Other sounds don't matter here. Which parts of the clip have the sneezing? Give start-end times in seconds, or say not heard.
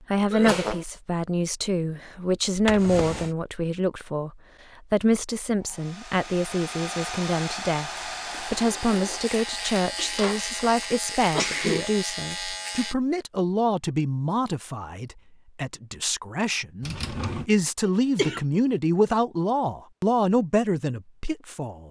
0.3-0.8, 11.1-11.9, 17.9-18.4.